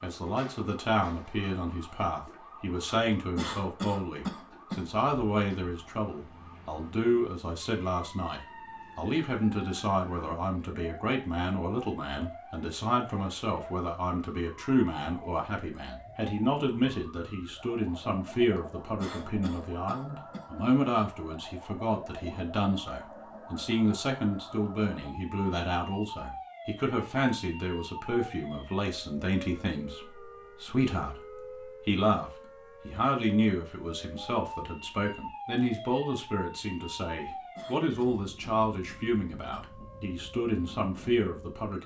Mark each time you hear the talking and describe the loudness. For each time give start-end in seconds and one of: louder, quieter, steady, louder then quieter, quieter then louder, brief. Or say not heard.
0.0-41.8 steady.